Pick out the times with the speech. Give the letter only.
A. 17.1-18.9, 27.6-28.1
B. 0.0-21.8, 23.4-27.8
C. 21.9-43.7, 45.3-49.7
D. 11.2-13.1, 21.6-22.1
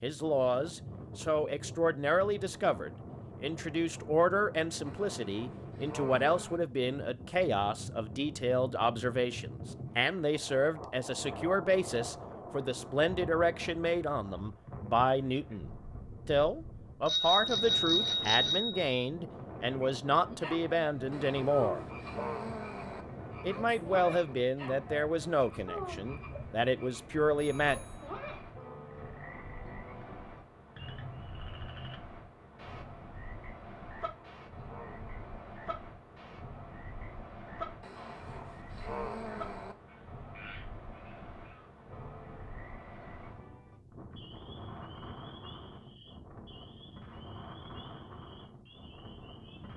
B.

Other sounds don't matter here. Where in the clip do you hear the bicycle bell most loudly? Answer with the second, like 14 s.
18 s.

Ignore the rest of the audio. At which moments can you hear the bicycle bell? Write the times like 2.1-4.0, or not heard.
17.1-18.9, 27.6-28.1.